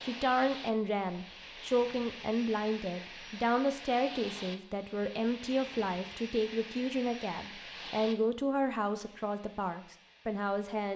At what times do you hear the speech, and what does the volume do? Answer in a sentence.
The speech can be heard from 0.0 to 10.9 s, at a steady volume.